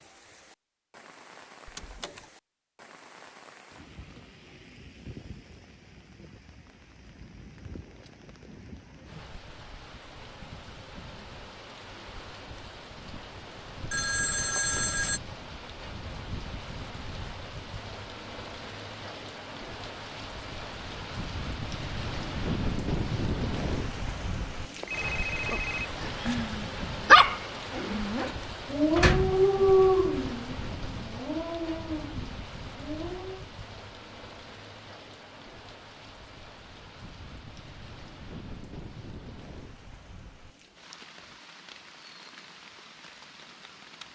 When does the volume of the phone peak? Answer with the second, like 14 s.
15 s.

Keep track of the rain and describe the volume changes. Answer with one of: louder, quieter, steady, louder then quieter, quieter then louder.
louder then quieter.